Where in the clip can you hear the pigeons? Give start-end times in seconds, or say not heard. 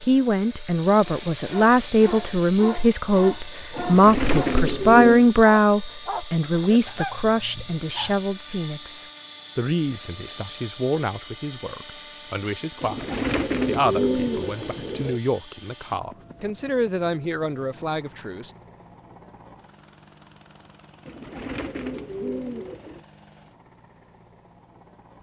3.8-5.3, 12.8-15.2, 21.1-23.1.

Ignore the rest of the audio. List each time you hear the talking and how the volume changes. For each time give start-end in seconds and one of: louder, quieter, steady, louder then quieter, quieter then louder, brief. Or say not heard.
0.0-18.6 quieter.